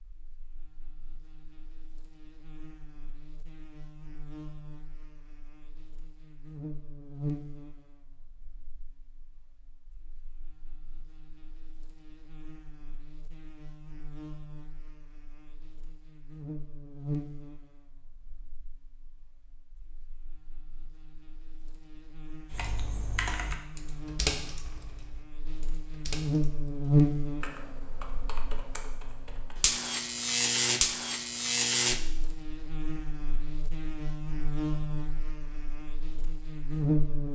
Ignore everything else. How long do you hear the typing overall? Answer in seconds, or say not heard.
7 s.